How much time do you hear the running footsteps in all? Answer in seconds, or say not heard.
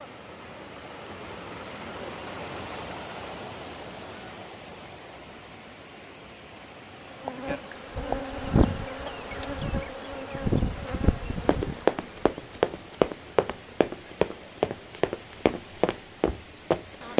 6 s.